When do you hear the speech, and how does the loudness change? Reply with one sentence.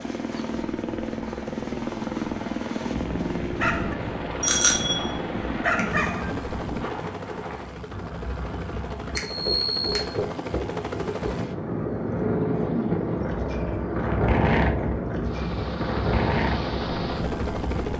You can't hear the speech here.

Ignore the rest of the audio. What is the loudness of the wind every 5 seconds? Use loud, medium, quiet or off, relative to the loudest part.
quiet, medium, loud, loud.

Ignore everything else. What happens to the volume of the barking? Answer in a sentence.
The loudness of the barking goes down, then up.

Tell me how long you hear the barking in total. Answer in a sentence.
The barking can be heard for 4 seconds in total.